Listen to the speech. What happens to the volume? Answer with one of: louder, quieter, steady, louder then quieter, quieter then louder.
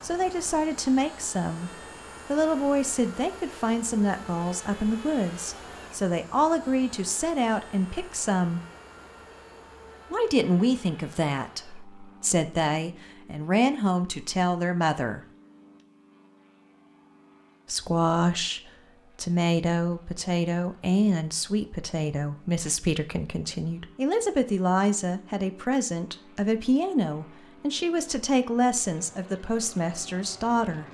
steady.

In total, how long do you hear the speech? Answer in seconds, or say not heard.
27 s.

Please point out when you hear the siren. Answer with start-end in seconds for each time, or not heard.
not heard.